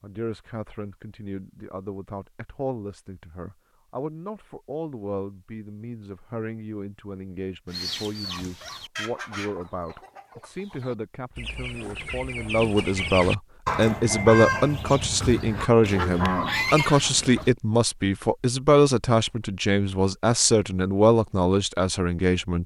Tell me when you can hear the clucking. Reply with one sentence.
You can hear the clucking from 7.7 to 17.5 s.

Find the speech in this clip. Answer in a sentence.
You can hear the speech from 0.0 to 22.6 s.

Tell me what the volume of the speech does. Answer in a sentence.
The loudness of the speech goes up.